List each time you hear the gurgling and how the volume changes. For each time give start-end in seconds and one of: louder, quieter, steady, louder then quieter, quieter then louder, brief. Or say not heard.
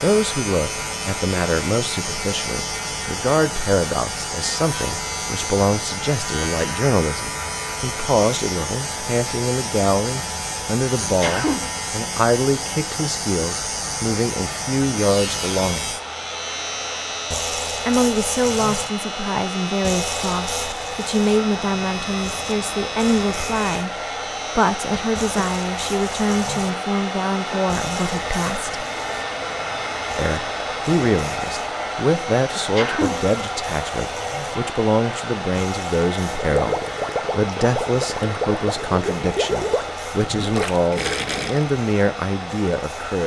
36.2-41.7 steady.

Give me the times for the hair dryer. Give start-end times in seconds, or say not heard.
0.1-43.2.